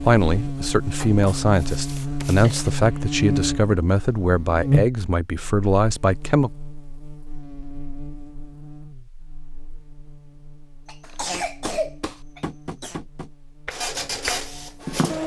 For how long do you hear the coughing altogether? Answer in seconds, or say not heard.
3 s.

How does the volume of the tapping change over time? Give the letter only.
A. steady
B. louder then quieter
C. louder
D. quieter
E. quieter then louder
C.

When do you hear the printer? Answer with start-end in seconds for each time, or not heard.
13.7-15.2.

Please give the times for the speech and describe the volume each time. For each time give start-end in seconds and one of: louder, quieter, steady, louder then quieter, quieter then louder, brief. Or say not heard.
0.0-6.5 steady.